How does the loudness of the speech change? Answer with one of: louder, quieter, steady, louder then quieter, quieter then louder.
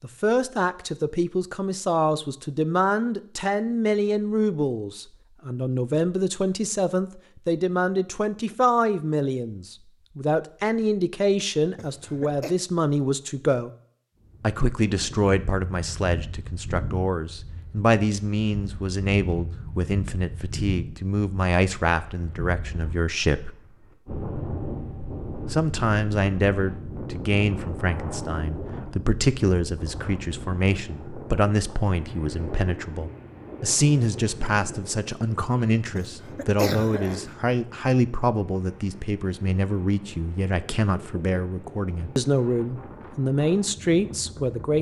steady.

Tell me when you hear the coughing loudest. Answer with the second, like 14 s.
37 s.